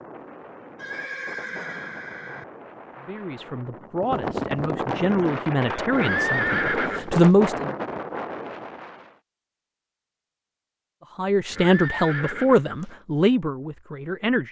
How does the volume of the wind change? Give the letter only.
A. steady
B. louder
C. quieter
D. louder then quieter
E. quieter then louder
B.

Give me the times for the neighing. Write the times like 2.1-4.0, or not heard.
0.8-2.5, 5.9-7.3, 11.4-12.9.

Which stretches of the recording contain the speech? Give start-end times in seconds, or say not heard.
3.0-7.7, 11.2-14.4.